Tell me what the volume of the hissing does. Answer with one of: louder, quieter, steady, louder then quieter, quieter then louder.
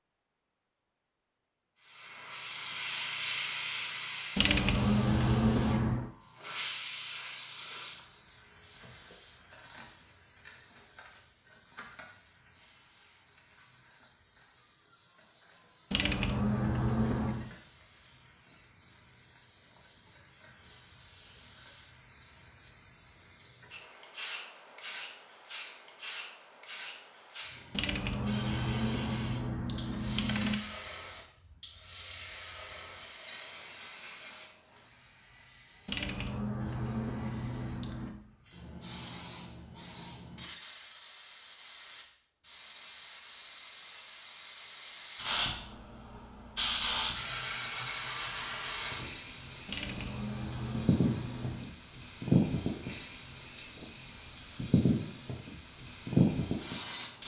quieter then louder.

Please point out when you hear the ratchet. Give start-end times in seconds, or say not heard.
4.3-6.1, 15.9-17.5, 27.7-30.6, 35.9-38.2, 49.6-51.8.